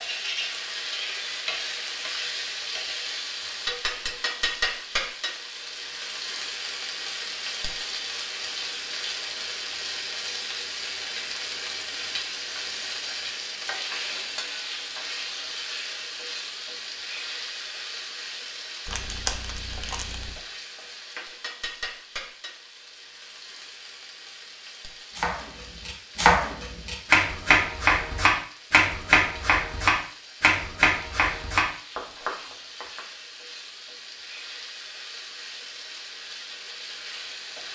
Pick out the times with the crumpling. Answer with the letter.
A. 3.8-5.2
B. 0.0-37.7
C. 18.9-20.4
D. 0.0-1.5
C.